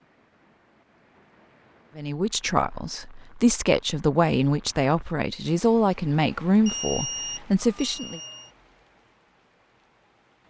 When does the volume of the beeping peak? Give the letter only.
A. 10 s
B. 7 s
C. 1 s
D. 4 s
B.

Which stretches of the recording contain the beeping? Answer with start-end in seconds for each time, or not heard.
6.7-8.5.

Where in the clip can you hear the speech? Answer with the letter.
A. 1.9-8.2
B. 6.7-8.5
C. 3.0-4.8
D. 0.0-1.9
A.